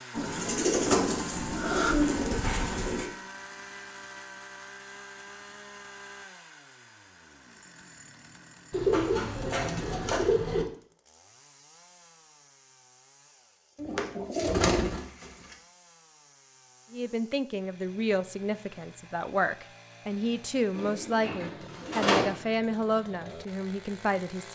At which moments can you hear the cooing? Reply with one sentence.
You can hear the cooing from 0.1 to 3.1 s, from 8.7 to 10.7 s, from 13.8 to 15.6 s and from 20.8 to 22.2 s.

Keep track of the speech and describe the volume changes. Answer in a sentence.
The loudness of the speech stays about the same.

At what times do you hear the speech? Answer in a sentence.
You can hear the speech from 16.9 to 24.5 s.